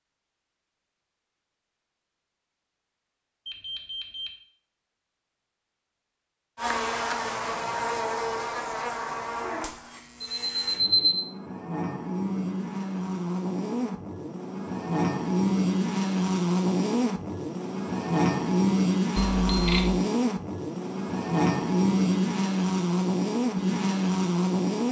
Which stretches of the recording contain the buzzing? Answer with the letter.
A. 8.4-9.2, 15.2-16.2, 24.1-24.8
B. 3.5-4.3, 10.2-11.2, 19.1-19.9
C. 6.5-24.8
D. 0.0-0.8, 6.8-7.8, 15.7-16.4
C.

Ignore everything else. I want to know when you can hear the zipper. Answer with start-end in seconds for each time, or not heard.
not heard.